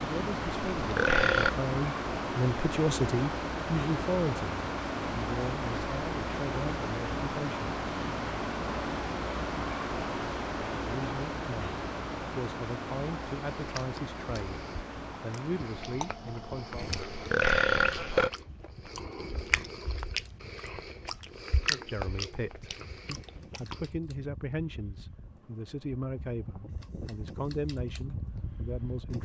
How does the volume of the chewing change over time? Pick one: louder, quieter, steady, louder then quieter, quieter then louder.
louder.